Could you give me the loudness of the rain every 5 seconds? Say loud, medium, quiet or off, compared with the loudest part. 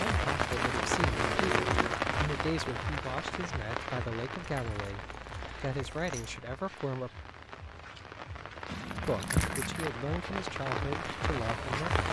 loud, medium, loud.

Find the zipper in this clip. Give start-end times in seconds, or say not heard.
not heard.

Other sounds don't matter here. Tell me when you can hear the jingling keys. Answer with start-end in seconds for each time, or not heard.
0.9-2.0, 4.5-6.4, 8.7-9.9.